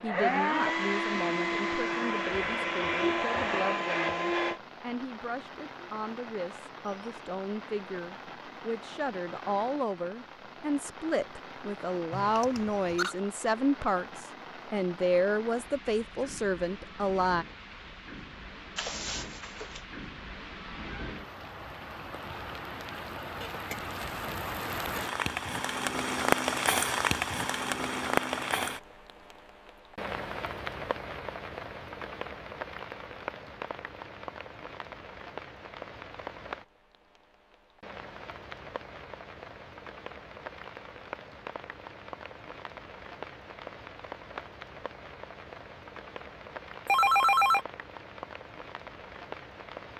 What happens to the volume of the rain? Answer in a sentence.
The volume of the rain goes up, then down.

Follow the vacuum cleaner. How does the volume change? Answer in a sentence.
The loudness of the vacuum cleaner stays about the same.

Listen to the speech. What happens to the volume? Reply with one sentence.
The volume of the speech goes up.